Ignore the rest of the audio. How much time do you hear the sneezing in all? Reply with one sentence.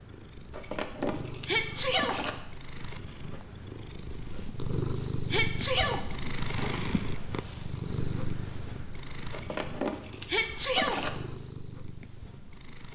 The sneezing can be heard for 2 seconds in total.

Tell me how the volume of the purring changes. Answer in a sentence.
The volume of the purring goes up, then down.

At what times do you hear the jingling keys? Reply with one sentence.
You can hear the jingling keys from 0.5 to 2.3 s and from 9.3 to 11.1 s.